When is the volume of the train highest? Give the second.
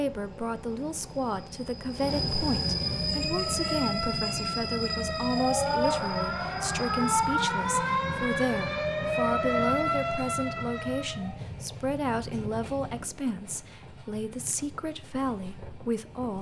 3 s.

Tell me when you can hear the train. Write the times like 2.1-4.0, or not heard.
0.0-16.3.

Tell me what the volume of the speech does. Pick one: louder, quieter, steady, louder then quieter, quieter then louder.
steady.